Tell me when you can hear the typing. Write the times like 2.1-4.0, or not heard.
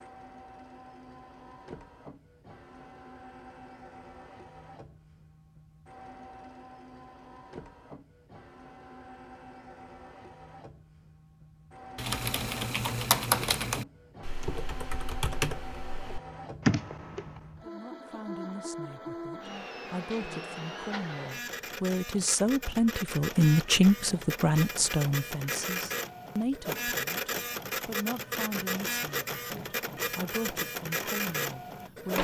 11.9-17.4.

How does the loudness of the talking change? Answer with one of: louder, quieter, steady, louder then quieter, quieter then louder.
louder then quieter.